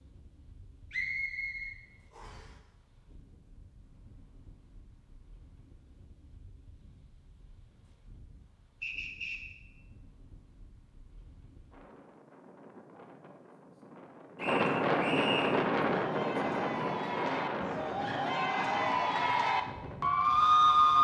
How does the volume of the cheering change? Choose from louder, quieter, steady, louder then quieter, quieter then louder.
louder.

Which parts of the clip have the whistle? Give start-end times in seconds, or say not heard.
0.9-2.5, 8.8-9.6, 14.3-15.6.